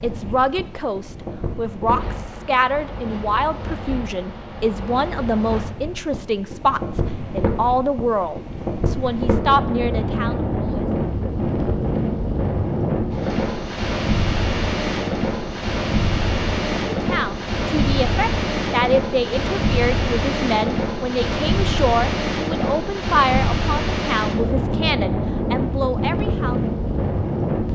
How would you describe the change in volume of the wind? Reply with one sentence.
The loudness of the wind goes up.